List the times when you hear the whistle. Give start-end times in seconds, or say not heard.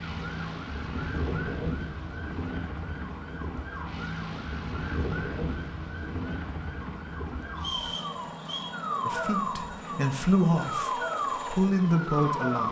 7.5-8.7.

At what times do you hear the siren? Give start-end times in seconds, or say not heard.
0.0-12.6.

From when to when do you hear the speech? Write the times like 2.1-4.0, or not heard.
9.1-12.6.